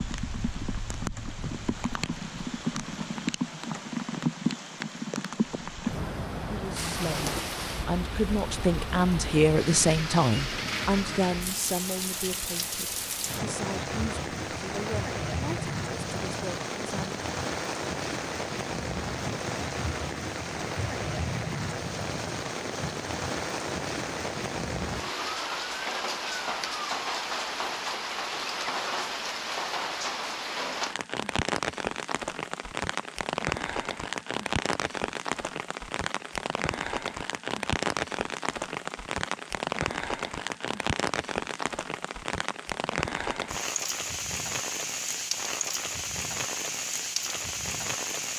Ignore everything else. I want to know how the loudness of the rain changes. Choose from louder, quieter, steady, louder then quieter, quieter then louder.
steady.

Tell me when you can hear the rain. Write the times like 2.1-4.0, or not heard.
0.0-48.3.